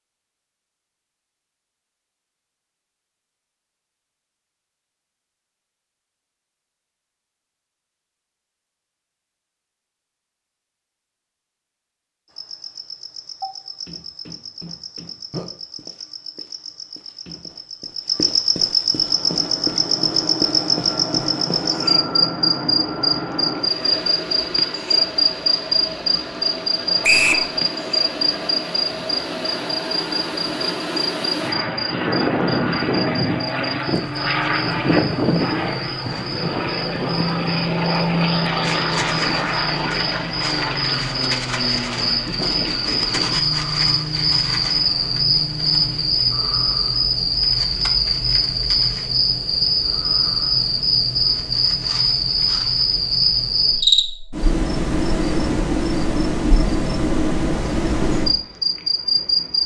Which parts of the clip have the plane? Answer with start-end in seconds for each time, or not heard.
18.8-46.2.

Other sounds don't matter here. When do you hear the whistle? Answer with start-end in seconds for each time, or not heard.
27.0-27.4.